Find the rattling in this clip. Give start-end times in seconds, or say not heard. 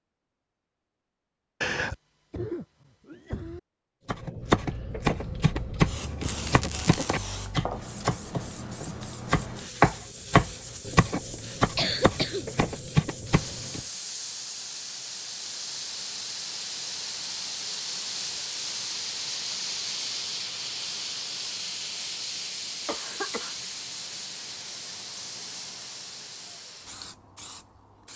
6.2-7.2.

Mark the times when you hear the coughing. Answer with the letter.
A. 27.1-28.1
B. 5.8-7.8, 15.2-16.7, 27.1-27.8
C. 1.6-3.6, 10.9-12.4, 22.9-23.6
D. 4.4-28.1
C.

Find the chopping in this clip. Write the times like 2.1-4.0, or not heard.
4.0-13.8.